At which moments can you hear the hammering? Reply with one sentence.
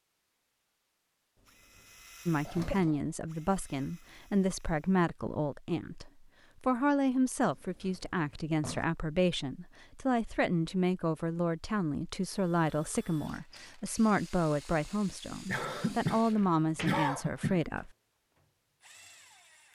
The hammering can't be heard in this clip.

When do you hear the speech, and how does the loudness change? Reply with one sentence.
You can hear the speech from 2.2 to 17.9 s, at a steady volume.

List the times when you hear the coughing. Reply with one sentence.
The coughing can be heard from 2.5 to 3.0 s and from 15.4 to 17.6 s.